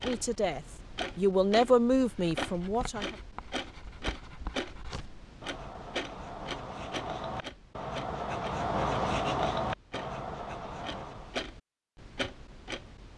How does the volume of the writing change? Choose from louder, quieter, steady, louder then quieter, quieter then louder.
louder.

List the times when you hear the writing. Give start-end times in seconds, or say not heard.
1.9-11.4.